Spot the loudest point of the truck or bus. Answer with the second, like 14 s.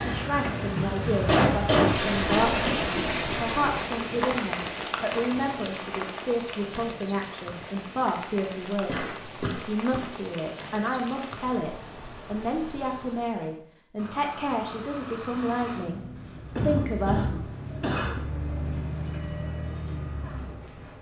19 s.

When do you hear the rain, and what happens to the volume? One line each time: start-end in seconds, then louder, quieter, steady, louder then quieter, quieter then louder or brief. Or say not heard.
0.0-13.6 quieter.